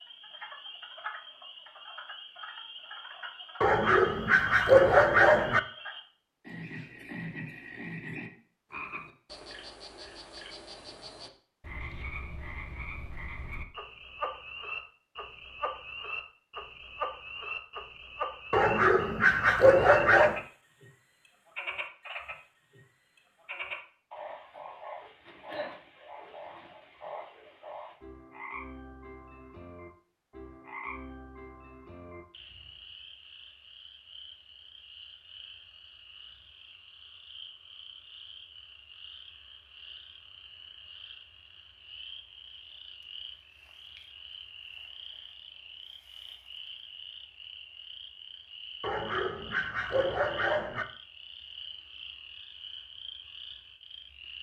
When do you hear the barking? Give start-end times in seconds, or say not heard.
3.6-5.6, 18.5-20.4, 48.8-50.9.